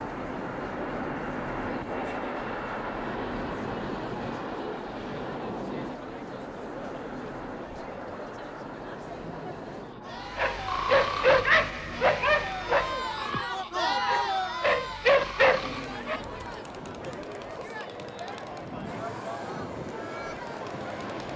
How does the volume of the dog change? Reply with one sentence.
The loudness of the dog goes down, then up.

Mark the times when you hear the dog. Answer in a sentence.
The dog can be heard from 10.2 to 16.2 s.